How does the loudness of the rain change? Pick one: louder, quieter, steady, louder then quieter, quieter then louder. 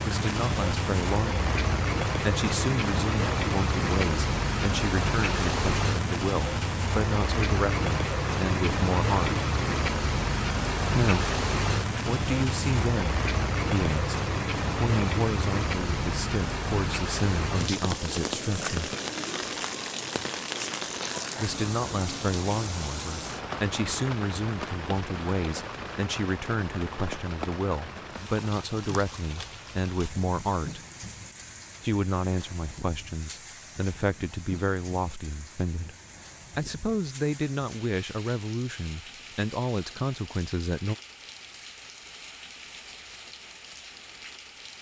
quieter.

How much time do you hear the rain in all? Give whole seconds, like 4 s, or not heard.
45 s.